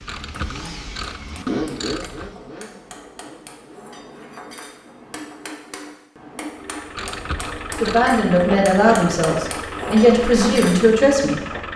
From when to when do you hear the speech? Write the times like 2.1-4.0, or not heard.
7.8-11.4.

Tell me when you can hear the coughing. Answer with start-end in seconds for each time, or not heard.
not heard.